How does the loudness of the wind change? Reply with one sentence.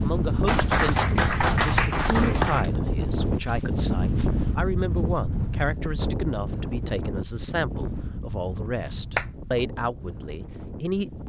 The loudness of the wind goes down.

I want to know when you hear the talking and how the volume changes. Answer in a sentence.
The talking can be heard from 0.0 to 11.2 s, at a steady volume.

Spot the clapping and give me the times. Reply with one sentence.
You can hear the clapping from 0.5 to 2.7 s.